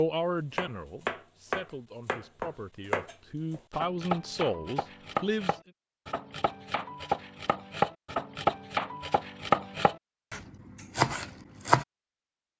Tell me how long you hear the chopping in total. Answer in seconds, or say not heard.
11 s.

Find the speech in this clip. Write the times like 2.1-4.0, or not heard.
0.0-5.5.